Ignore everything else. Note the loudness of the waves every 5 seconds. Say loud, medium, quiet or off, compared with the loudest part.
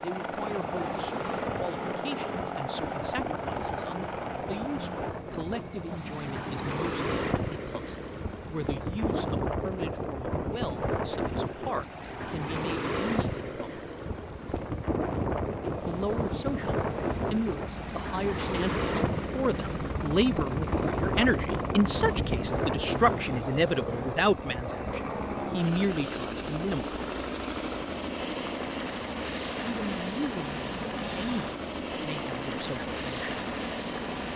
medium, loud, loud, loud, loud, off, off.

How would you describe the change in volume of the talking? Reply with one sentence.
The loudness of the talking goes up, then down.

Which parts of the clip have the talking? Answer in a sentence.
You can hear the talking from 0.0 to 13.8 s, from 15.8 to 26.9 s and from 29.6 to 33.3 s.